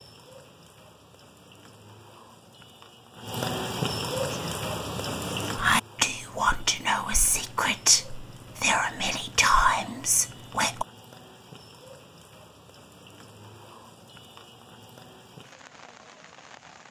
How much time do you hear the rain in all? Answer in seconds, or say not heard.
17 s.